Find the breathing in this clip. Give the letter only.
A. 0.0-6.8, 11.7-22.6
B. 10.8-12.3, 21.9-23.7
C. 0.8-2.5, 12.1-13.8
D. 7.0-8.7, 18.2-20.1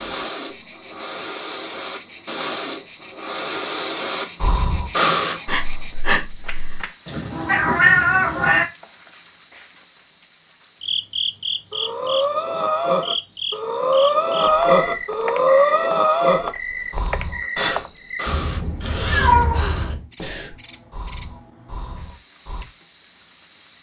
A.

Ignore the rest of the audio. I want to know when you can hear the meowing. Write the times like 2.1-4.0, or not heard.
7.0-8.7, 18.2-20.1.